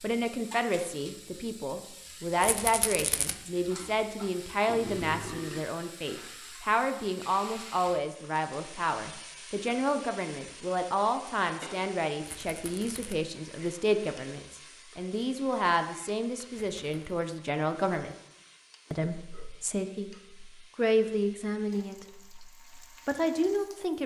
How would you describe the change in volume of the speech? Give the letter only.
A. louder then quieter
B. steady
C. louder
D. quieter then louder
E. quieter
B.